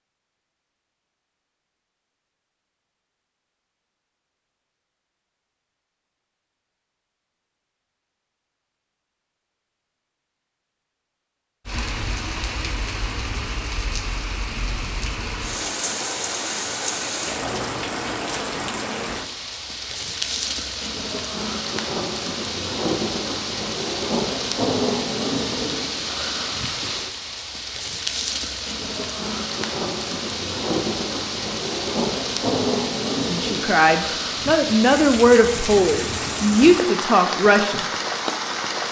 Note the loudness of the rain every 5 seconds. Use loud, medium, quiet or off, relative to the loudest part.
off, off, medium, loud, loud, loud, loud, loud.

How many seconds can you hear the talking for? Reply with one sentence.
You can hear the talking for 5 seconds altogether.